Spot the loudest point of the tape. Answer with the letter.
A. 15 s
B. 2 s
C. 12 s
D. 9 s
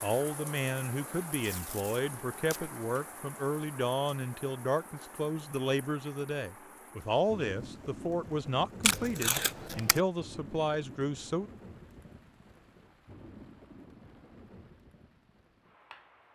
D.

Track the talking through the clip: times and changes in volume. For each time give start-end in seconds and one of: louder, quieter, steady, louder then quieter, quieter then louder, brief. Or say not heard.
0.0-11.5 steady.